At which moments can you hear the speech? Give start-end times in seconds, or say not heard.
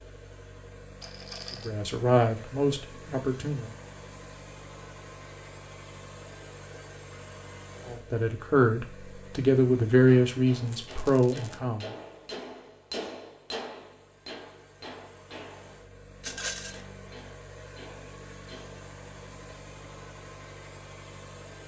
1.6-3.8, 7.8-11.9.